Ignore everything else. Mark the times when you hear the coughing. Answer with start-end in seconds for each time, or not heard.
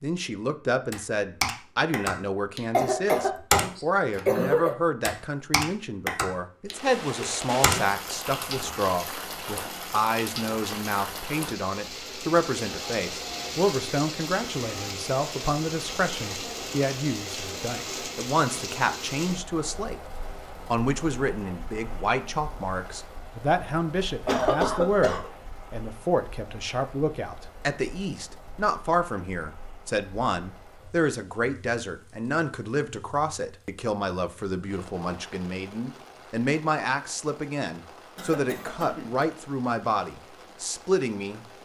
2.7-3.6, 4.2-4.8, 24.2-25.2, 38.1-39.2.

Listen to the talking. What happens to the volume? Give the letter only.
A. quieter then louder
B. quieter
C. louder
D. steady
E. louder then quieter
D.